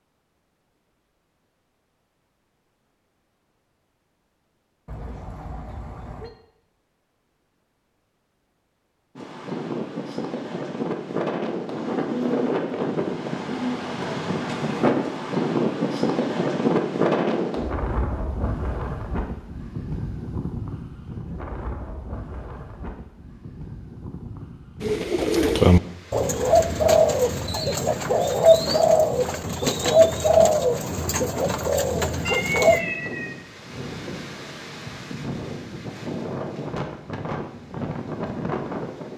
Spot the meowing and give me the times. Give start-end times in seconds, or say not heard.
4.8-6.3, 32.2-33.4.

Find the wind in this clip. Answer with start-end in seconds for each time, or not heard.
9.2-39.1.